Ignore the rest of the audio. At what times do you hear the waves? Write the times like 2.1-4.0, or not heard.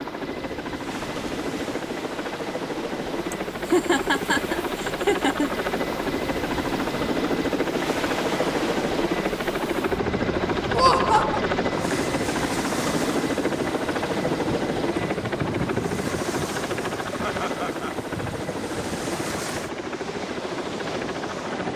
0.2-21.7.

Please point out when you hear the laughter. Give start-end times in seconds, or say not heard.
3.3-5.5, 10.7-11.4, 17.2-18.0.